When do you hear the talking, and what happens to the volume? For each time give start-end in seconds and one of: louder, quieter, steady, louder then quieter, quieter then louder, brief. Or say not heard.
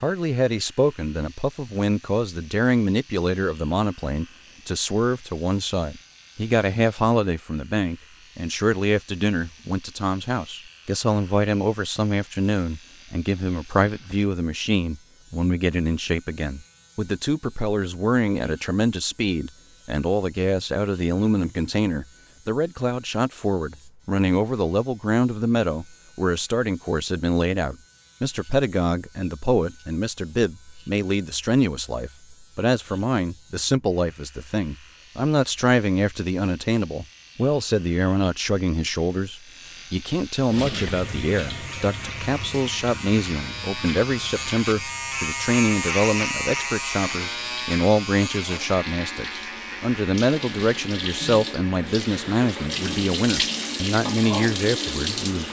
0.0-55.4 steady.